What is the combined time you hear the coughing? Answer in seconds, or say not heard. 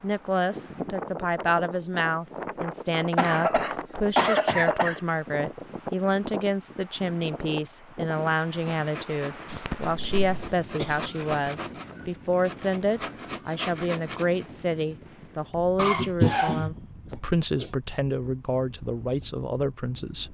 6 s.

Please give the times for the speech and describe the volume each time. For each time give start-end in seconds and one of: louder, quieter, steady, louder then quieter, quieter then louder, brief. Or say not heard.
0.0-20.2 steady.